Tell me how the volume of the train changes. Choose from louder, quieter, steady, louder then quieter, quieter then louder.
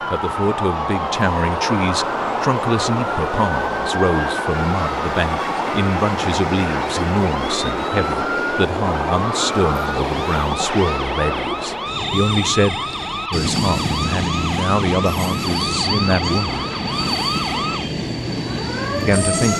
steady.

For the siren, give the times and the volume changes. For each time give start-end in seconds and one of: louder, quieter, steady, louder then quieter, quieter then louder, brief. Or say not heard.
0.0-19.5 steady.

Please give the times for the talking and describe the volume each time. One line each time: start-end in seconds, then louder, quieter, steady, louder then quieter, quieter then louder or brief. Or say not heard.
0.1-16.6 steady
19.1-19.5 brief.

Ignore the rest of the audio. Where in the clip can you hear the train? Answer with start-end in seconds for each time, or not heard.
0.0-19.5.